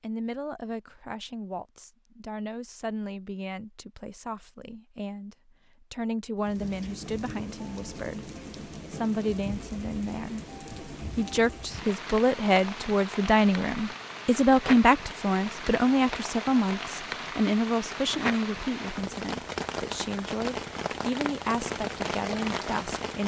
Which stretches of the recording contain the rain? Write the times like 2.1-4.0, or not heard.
6.4-23.2.